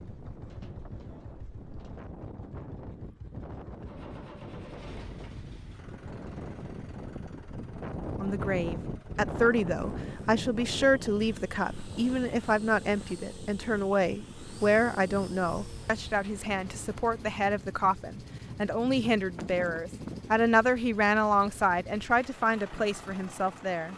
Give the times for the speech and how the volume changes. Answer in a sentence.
The speech can be heard from 8.2 to 23.9 s, at a steady volume.